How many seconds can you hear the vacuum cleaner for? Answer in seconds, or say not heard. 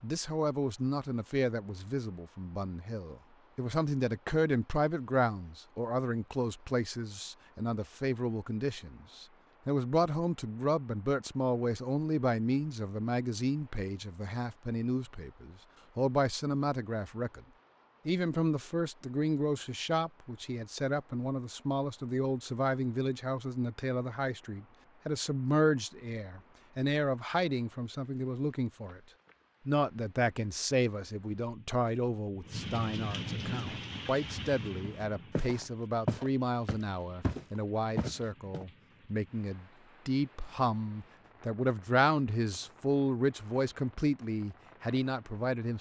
not heard.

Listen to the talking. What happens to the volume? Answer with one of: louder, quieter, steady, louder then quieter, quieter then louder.
steady.